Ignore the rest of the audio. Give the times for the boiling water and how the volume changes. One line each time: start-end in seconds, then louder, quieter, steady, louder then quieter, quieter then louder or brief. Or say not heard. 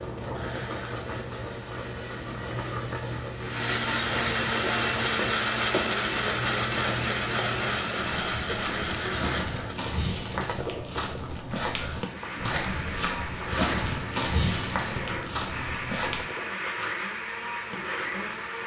0.0-18.6 quieter.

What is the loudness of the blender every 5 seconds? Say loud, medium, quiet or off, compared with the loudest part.
loud, loud, medium, medium.